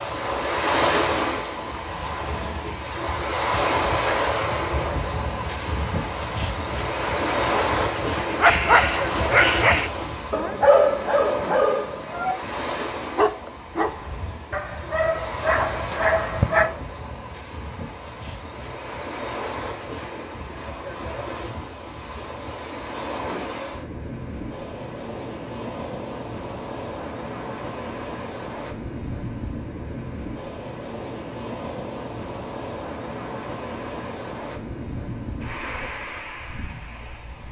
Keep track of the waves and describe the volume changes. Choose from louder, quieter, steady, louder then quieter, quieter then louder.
quieter.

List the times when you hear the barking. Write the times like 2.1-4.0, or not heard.
8.3-16.7.